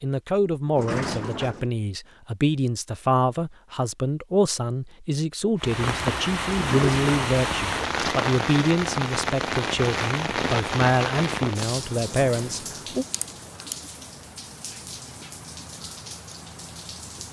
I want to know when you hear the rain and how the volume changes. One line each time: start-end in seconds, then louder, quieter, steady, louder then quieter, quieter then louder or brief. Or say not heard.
5.5-17.2 quieter.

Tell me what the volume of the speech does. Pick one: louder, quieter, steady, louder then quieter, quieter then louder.
steady.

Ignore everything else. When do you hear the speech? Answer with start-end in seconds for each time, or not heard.
0.0-13.1.